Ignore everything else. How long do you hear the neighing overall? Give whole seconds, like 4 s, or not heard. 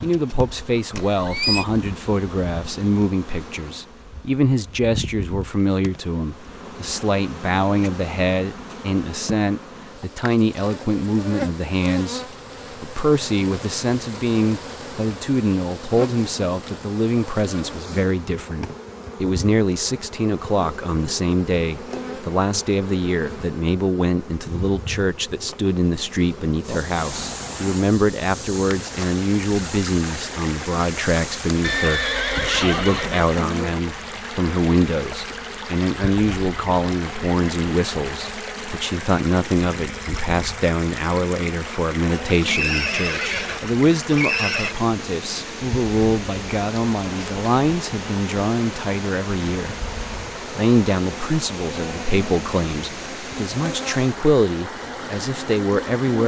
5 s.